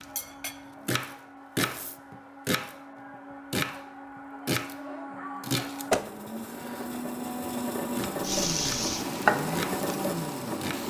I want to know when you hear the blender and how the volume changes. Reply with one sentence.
You can hear the blender from 0.0 to 10.8 s, getting louder.